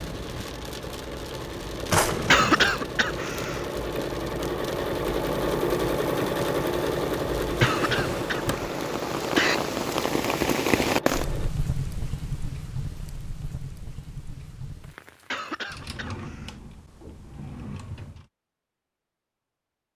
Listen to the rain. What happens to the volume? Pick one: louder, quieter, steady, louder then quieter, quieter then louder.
louder then quieter.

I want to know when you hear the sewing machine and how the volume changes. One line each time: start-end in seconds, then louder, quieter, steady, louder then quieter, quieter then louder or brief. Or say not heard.
0.0-11.6 louder then quieter.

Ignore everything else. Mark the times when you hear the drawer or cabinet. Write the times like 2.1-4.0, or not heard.
1.9-2.7, 7.5-8.8, 15.7-18.2.